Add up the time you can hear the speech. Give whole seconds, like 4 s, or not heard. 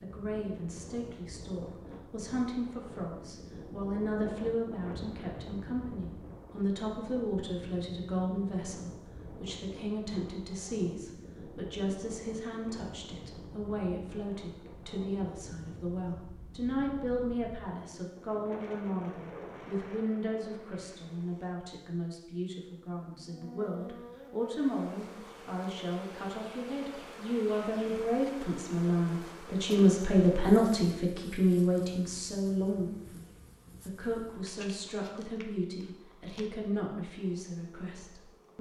38 s.